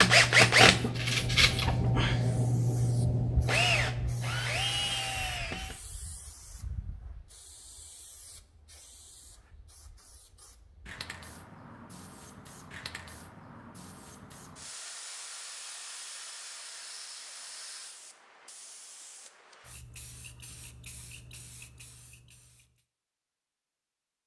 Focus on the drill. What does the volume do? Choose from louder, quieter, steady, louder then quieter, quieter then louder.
quieter.